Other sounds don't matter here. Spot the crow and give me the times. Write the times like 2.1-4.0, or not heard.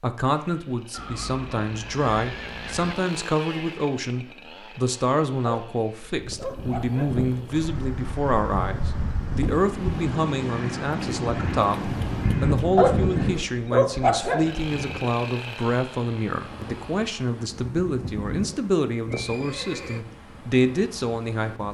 not heard.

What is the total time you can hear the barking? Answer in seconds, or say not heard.
4 s.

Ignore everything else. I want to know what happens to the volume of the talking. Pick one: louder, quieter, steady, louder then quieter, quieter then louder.
steady.